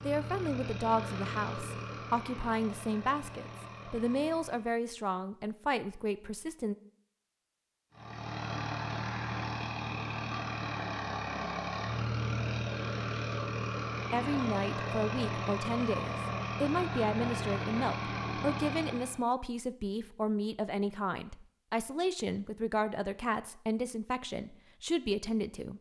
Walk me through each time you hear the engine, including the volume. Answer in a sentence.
You can hear the engine from 0.0 to 4.8 s, getting quieter; and from 7.9 to 19.2 s, at a steady volume.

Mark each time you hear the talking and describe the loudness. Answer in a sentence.
The talking can be heard from 0.0 to 6.8 s, at a steady volume; and from 14.1 to 25.7 s, at a steady volume.